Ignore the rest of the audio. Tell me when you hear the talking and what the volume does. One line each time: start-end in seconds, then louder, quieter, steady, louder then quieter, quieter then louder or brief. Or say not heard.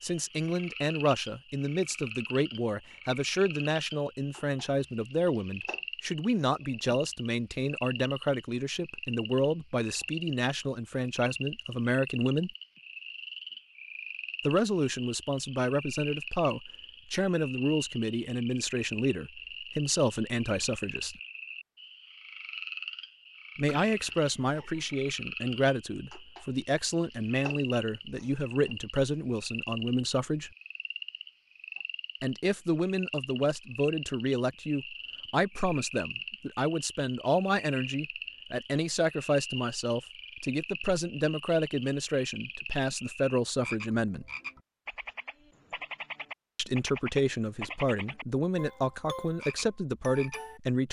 0.0-12.5 steady
14.4-21.1 steady
23.6-30.5 steady
32.2-44.2 steady
46.5-50.8 steady.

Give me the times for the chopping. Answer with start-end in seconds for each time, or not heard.
not heard.